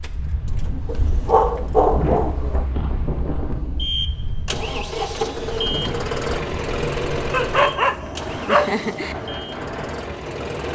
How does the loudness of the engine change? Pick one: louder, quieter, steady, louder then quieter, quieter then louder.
louder then quieter.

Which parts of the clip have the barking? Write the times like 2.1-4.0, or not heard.
0.8-2.6, 7.3-9.2.